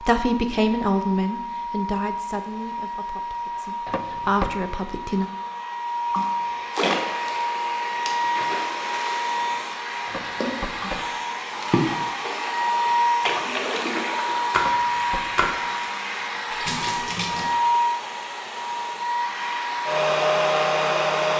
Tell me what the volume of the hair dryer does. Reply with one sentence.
The loudness of the hair dryer goes up.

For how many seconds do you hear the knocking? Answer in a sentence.
The knocking can be heard for 3 seconds in total.